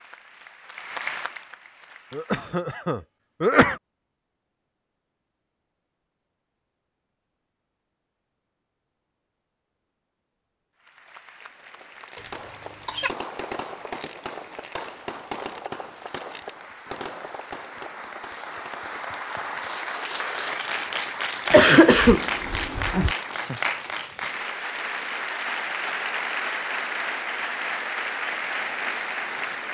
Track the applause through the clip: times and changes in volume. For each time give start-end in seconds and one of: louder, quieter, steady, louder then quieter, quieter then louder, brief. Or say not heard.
0.0-2.6 brief
10.8-29.7 louder.